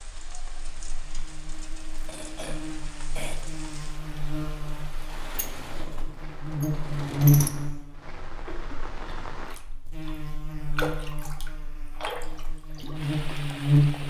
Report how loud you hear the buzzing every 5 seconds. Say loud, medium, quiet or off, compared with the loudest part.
quiet, loud, loud.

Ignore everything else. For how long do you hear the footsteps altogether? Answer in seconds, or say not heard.
not heard.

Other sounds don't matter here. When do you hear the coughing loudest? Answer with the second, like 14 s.
3 s.